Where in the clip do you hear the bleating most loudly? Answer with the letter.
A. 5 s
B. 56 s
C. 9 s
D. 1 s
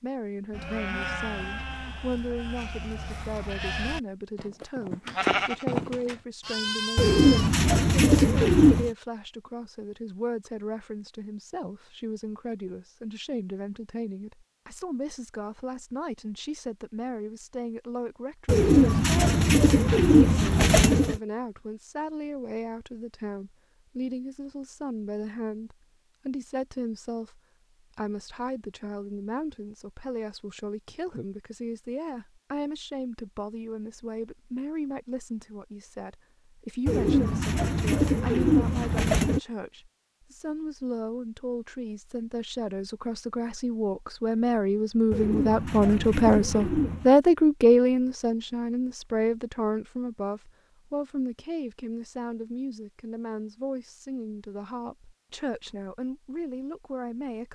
A.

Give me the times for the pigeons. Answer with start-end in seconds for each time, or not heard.
7.0-8.9, 18.4-21.2, 36.9-39.4, 45.1-47.1.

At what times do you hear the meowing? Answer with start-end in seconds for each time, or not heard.
not heard.